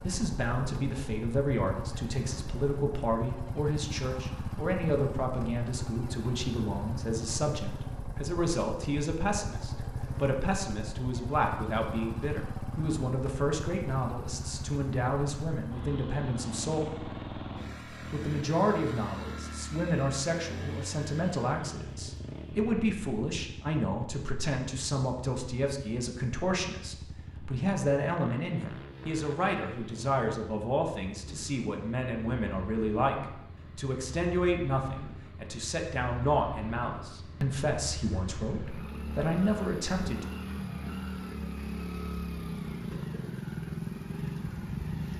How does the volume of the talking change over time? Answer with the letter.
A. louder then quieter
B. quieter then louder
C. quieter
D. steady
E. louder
D.